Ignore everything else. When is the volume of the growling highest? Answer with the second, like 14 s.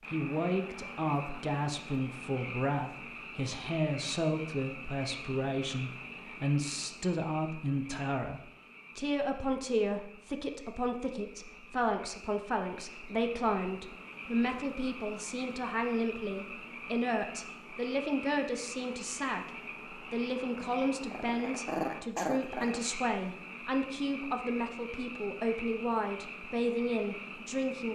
22 s.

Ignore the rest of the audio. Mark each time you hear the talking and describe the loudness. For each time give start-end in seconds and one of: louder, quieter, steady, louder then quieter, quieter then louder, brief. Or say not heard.
0.1-27.9 steady.